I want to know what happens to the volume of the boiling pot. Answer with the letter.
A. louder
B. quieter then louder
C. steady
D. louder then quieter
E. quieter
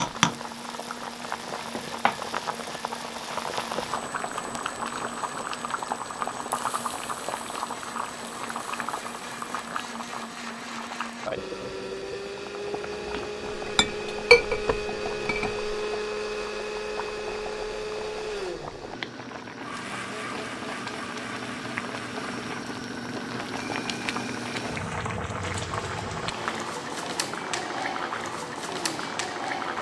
B.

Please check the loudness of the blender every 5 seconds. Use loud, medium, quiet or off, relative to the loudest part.
medium, medium, loud, loud, medium, medium.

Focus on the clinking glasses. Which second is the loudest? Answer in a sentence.
The volume of the clinking glasses peaks at 14 seconds.